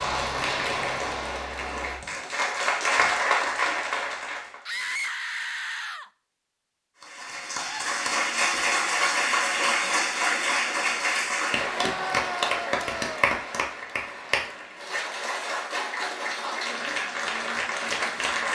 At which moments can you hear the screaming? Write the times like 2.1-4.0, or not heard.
4.7-6.1, 11.8-13.2.